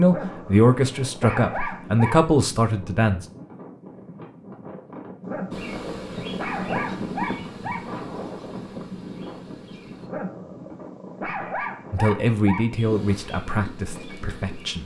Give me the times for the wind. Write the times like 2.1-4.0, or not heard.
0.1-14.8.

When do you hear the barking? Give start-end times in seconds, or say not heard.
0.1-2.2, 5.2-7.9, 10.1-12.7.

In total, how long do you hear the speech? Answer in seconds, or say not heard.
6 s.